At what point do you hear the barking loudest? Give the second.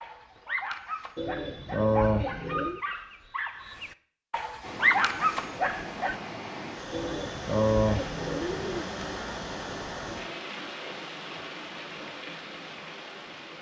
5 s.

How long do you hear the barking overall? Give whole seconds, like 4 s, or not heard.
6 s.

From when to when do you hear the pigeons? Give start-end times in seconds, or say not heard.
1.1-2.8, 6.9-8.8.